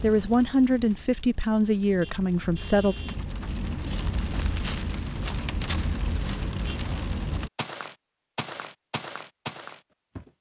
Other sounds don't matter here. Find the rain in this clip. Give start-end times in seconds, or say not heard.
0.0-7.5.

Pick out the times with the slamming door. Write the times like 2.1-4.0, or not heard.
not heard.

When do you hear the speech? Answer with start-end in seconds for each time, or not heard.
0.0-3.0.